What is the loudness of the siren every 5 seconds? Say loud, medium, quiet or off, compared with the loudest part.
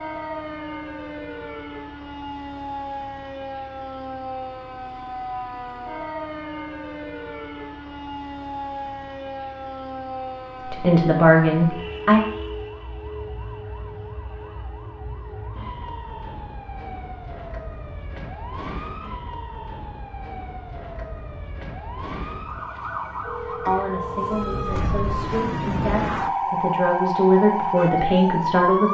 medium, medium, medium, quiet, medium, loud.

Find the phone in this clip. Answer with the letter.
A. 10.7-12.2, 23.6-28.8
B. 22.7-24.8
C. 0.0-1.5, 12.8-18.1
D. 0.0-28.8
B.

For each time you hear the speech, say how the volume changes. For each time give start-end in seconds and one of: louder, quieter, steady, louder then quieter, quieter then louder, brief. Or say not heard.
10.7-12.2 brief
23.6-28.8 louder.